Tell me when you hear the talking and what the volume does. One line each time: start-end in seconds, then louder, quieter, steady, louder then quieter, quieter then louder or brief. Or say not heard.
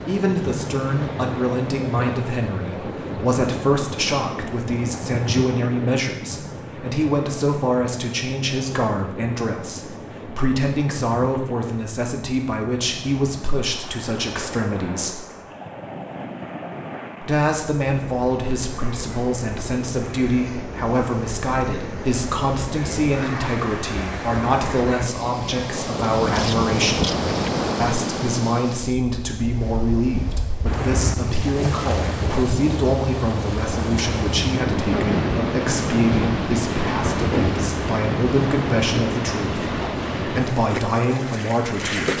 0.1-15.2 steady
17.2-27.1 steady
27.8-42.1 steady.